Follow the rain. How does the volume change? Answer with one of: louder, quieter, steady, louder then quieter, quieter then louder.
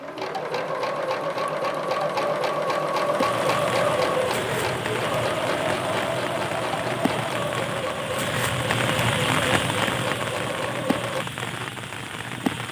louder then quieter.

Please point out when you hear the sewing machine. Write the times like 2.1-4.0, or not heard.
0.0-11.2.